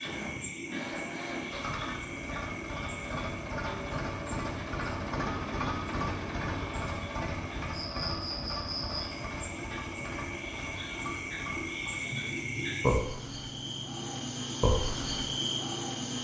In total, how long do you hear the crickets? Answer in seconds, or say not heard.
16 s.